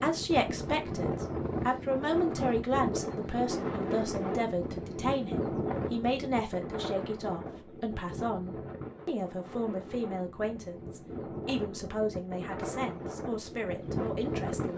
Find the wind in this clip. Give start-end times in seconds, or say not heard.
0.0-14.7.